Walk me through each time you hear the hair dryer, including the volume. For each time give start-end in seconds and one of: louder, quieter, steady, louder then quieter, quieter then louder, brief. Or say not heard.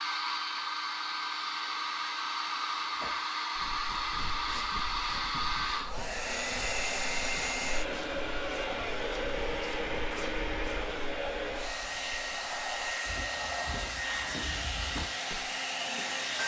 0.0-16.4 steady.